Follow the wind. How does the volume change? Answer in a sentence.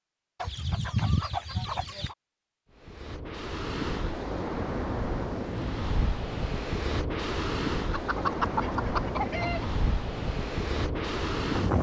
The loudness of the wind stays about the same.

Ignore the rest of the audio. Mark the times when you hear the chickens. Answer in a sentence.
The chickens can be heard from 0.4 to 2.1 s and from 7.9 to 9.7 s.